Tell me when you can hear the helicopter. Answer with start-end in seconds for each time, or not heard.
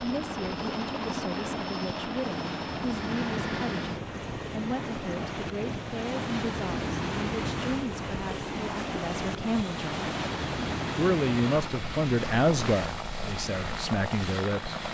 0.0-14.9.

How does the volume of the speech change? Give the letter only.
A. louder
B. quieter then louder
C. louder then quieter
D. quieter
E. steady
A.